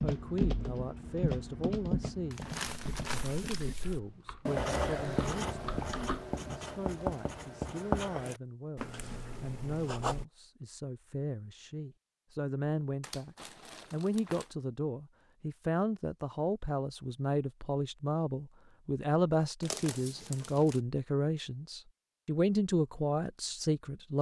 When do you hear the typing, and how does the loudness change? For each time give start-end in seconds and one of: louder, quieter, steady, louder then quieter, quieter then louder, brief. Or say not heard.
0.0-6.4 quieter then louder.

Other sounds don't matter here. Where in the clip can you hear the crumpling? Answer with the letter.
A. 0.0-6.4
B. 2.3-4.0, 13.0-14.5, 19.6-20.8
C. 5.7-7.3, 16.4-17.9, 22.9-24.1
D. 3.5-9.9
B.